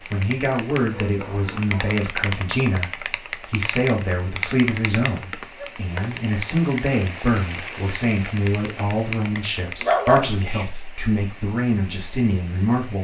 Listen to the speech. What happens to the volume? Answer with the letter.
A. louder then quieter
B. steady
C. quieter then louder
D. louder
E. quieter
B.